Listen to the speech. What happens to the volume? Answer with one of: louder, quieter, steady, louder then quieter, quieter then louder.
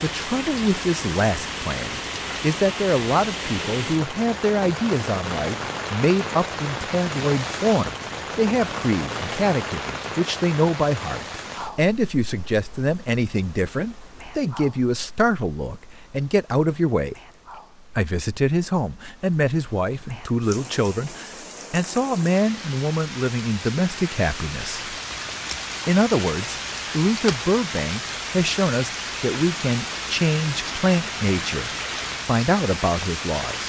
steady.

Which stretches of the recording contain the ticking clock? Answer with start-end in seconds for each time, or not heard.
not heard.